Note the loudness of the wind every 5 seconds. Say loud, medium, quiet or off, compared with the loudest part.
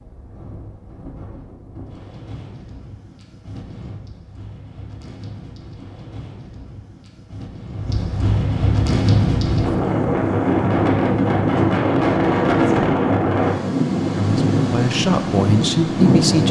quiet, medium, loud, loud.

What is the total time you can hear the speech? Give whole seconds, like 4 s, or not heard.
2 s.